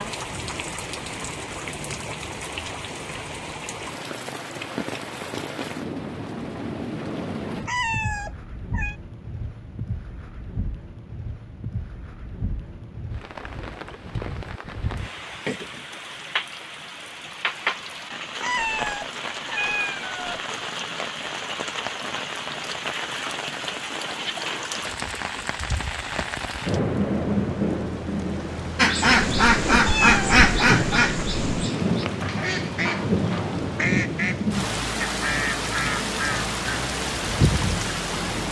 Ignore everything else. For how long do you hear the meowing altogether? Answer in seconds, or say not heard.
6 s.